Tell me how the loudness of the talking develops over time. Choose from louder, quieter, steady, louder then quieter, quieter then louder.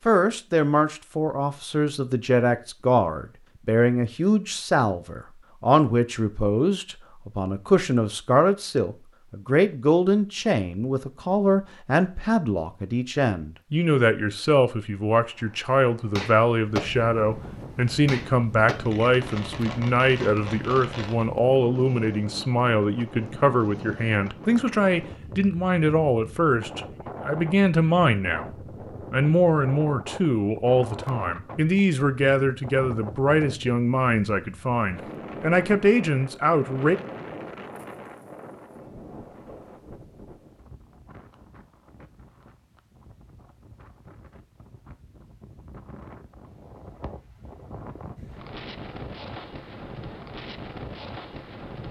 steady.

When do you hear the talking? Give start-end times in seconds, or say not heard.
0.1-28.5, 29.1-37.0.